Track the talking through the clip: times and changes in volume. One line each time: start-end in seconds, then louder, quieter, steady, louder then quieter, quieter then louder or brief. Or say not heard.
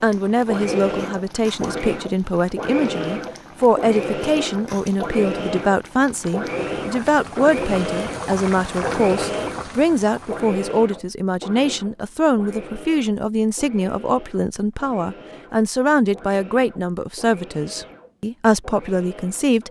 0.0-19.6 steady.